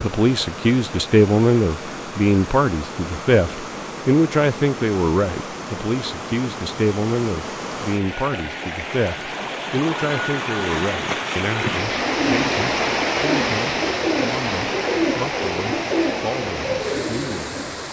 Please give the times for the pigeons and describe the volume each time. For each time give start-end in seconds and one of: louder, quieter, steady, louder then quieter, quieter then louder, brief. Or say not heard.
11.8-17.8 steady.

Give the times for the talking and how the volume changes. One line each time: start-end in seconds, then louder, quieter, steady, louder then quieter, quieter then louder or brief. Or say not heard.
0.0-17.6 quieter.